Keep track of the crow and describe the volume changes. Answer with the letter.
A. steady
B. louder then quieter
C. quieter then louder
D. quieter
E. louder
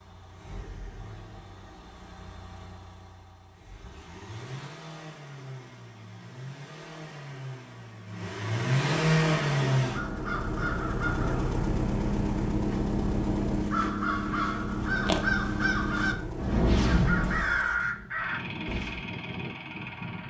E.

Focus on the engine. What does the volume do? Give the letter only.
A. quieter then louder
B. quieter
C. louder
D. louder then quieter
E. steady
D.